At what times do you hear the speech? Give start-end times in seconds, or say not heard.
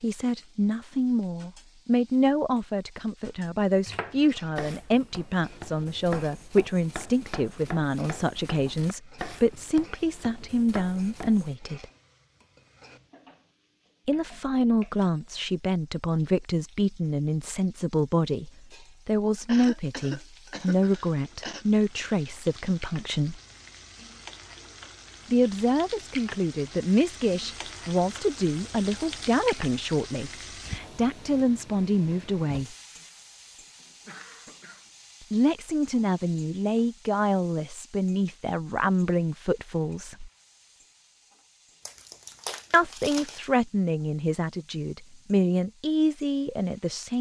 0.0-11.8, 14.1-23.4, 25.3-32.8, 35.3-40.3, 42.7-47.1.